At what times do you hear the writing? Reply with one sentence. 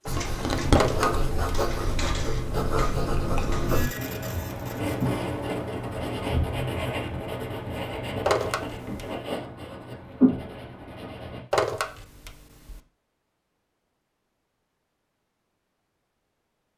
You can hear the writing from 0.1 to 11.4 s.